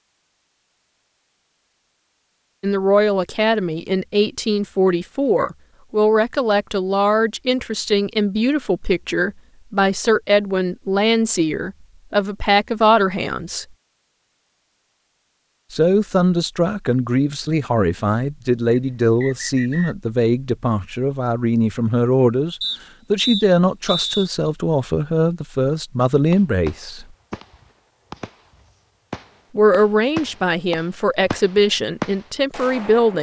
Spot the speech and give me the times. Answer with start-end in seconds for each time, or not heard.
2.6-13.7, 15.7-27.1, 29.6-33.1.